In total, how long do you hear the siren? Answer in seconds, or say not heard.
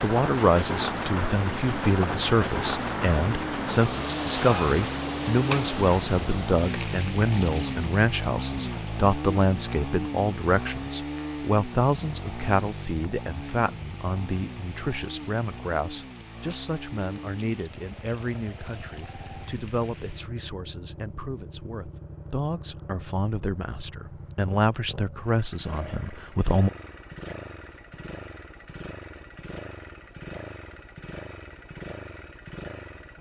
not heard.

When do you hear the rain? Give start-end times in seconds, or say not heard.
0.0-20.3.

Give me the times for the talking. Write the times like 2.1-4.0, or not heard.
0.0-26.7.